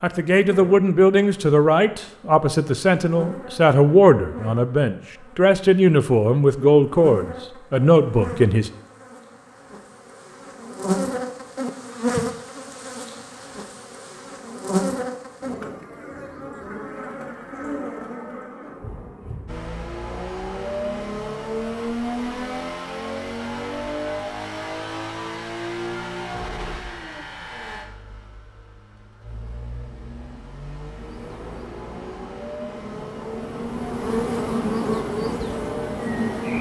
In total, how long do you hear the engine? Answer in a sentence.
You can hear the engine for 17 seconds altogether.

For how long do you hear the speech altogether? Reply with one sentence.
You can hear the speech for 9 seconds altogether.